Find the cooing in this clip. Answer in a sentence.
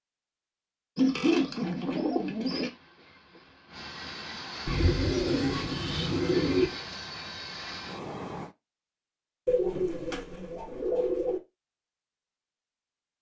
You can hear the cooing from 0.9 to 2.7 s, from 4.7 to 6.7 s and from 9.4 to 11.4 s.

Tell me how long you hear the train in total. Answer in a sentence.
The train can be heard for 7 seconds in total.